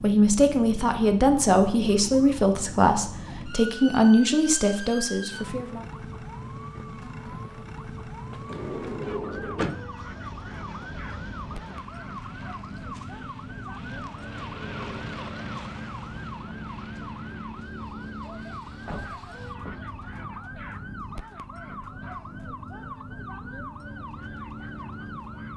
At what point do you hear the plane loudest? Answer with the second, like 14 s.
15 s.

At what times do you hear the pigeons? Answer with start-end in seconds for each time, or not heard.
not heard.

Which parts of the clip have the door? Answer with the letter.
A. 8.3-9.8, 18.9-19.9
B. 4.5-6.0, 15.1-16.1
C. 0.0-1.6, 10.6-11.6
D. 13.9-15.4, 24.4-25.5
A.